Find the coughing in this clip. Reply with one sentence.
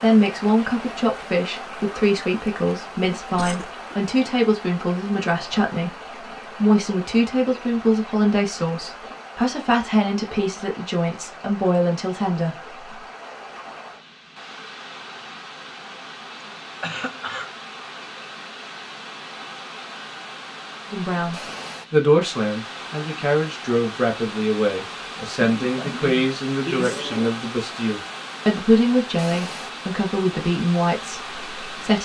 The coughing can be heard from 3.2 to 3.8 s, from 16.8 to 17.5 s and from 25.4 to 27.3 s.